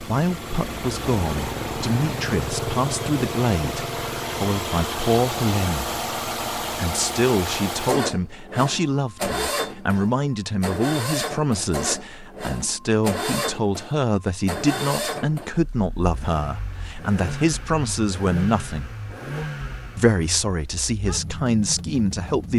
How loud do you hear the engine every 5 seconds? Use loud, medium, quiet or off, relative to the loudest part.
loud, loud, loud, medium, medium.